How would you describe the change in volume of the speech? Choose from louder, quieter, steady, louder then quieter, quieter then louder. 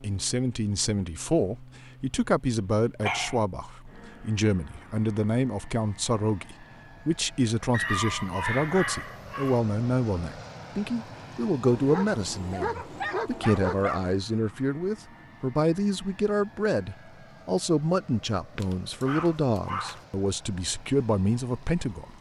steady.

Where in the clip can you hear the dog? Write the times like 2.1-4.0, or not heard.
3.0-3.5, 7.7-9.6, 11.6-14.2, 18.6-20.1.